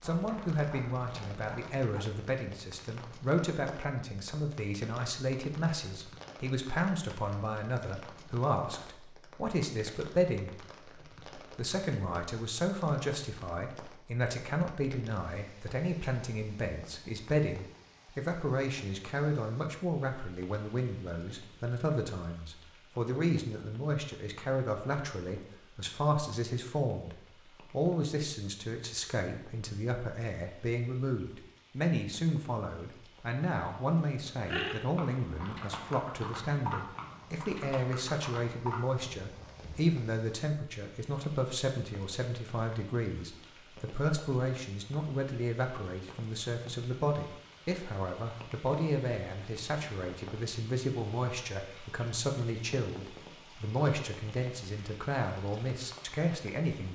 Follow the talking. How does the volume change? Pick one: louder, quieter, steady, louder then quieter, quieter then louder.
steady.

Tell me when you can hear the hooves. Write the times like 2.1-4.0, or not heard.
34.1-40.0.